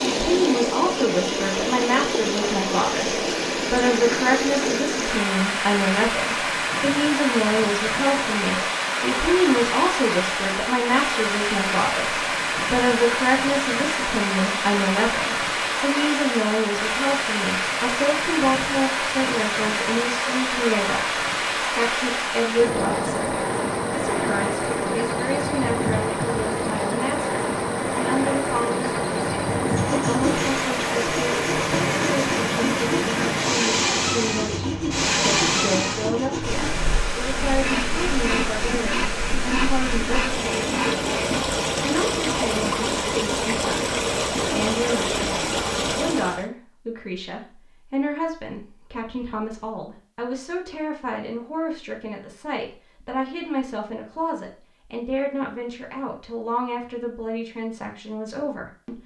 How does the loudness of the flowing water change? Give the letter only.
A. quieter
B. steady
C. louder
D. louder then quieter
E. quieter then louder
B.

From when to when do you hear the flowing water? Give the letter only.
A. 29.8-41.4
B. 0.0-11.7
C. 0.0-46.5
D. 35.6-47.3
C.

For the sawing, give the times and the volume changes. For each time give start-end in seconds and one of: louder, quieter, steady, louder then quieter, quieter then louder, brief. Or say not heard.
29.8-41.4 steady.